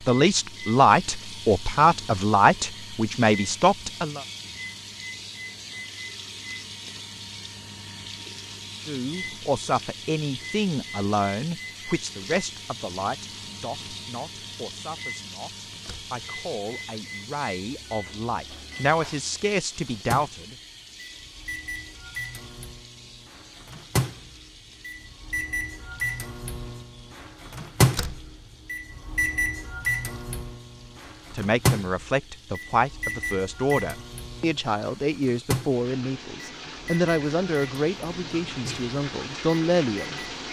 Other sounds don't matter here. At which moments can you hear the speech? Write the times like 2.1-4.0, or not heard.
0.1-4.2, 8.8-20.6, 31.3-40.2.